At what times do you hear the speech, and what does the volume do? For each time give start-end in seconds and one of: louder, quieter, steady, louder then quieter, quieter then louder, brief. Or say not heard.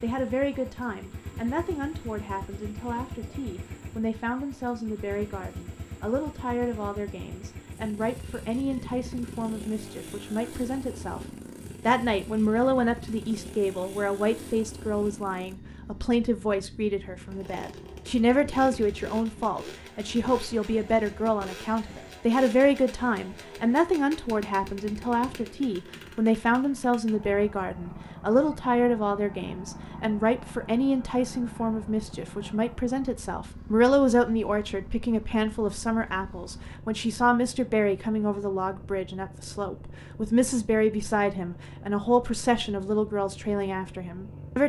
0.0-11.2 steady
11.8-44.6 steady.